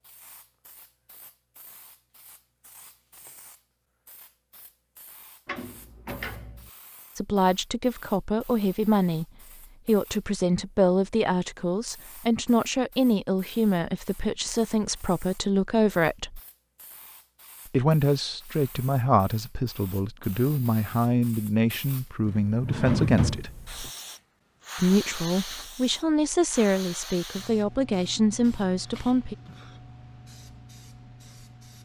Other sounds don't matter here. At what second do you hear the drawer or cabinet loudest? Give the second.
23 s.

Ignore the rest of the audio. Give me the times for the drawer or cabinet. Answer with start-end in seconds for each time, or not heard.
5.5-6.7, 22.5-23.9.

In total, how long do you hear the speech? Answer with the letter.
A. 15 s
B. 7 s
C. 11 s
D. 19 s
D.